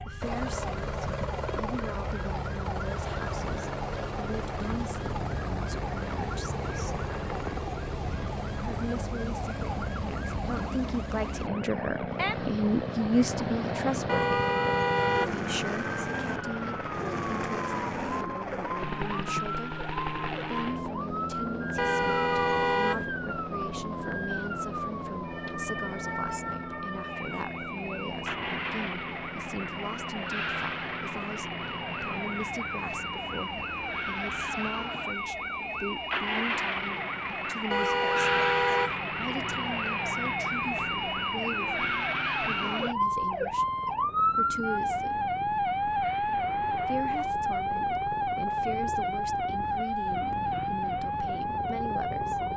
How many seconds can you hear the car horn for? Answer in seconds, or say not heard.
4 s.